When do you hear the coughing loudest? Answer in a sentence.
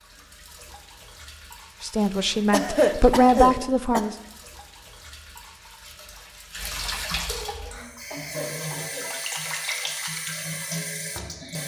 The volume of the coughing peaks at 3 seconds.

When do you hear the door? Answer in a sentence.
You can't hear the door here.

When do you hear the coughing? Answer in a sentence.
The coughing can be heard from 2.5 to 4.0 s and from 8.1 to 9.1 s.